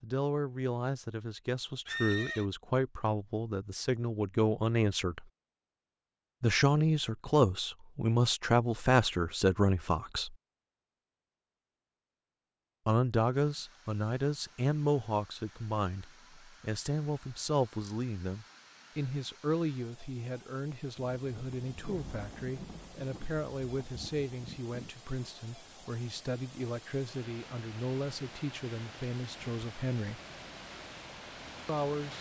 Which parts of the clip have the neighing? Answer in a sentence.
You can hear the neighing from 1.9 to 2.5 s.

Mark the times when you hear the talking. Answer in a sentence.
The talking can be heard from 0.0 to 5.2 s, from 6.4 to 10.3 s, from 12.8 to 30.2 s and from 31.6 to 32.1 s.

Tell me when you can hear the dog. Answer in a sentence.
You can't hear the dog here.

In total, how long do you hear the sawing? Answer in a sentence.
You can't hear the sawing here.